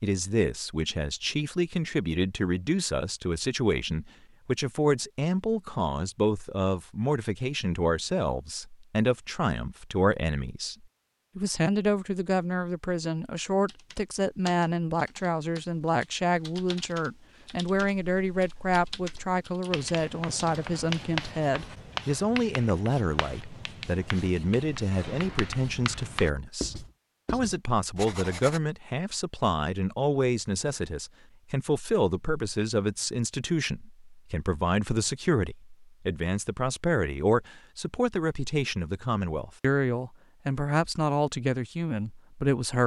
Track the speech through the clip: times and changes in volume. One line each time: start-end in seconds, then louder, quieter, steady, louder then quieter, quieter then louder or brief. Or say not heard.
0.0-10.8 steady
11.3-42.8 steady.